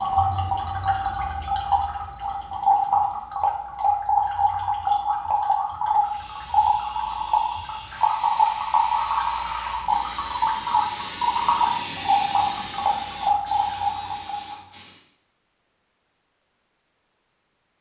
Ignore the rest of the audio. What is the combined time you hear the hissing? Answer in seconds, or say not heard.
9 s.